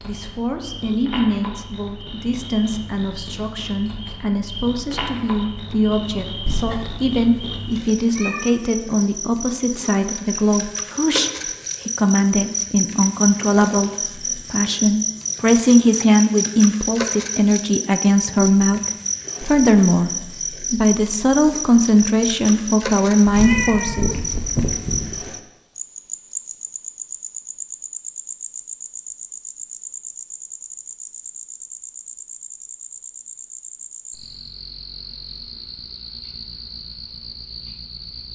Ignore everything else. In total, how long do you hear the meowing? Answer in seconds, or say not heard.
4 s.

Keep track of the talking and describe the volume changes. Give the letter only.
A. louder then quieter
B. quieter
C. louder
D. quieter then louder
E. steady
C.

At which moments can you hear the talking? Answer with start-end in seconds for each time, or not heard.
0.0-18.8, 19.4-24.1.